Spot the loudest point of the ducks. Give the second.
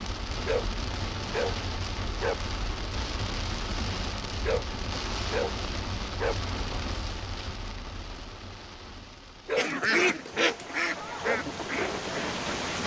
10 s.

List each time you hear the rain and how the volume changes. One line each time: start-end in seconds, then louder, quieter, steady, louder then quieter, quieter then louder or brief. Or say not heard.
0.0-12.8 quieter then louder.